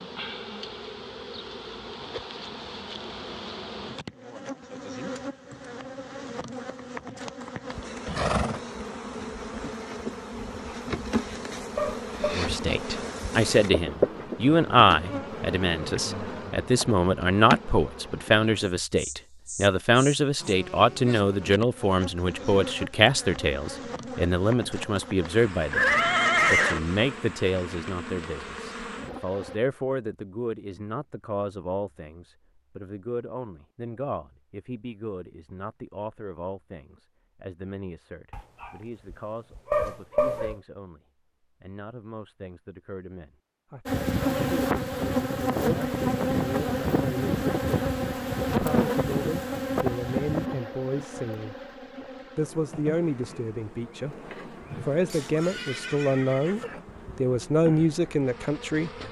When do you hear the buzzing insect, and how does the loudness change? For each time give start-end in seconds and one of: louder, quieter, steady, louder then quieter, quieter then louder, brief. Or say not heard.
0.0-29.6 louder then quieter
43.9-59.0 quieter.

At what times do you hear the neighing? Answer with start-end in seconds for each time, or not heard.
8.1-8.6, 25.7-26.8, 55.0-56.6.